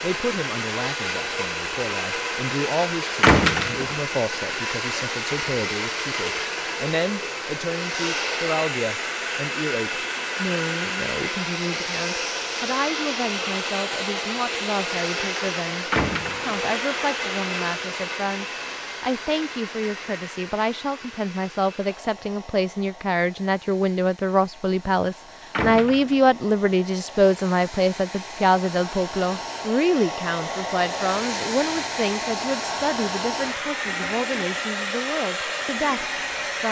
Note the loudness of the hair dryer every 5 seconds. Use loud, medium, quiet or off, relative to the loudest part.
loud, loud, loud, loud, quiet, medium, loud, loud.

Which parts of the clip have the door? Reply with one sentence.
You can hear the door from 3.2 to 4.0 s, from 15.9 to 16.6 s and from 25.5 to 26.3 s.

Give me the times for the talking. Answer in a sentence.
You can hear the talking from 0.0 to 36.6 s.